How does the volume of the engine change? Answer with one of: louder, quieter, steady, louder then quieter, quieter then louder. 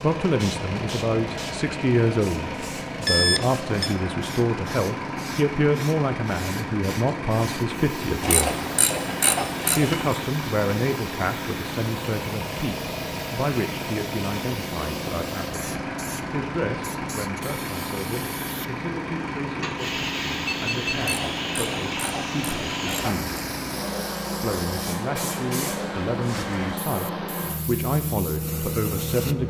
steady.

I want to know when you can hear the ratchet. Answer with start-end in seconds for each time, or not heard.
8.2-10.2, 20.9-23.4.